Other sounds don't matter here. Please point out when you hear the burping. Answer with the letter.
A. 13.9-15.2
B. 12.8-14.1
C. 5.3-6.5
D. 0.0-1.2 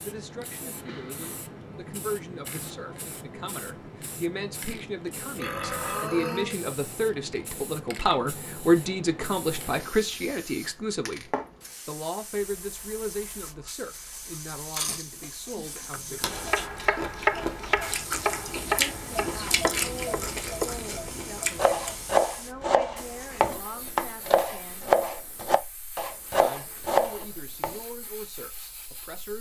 C.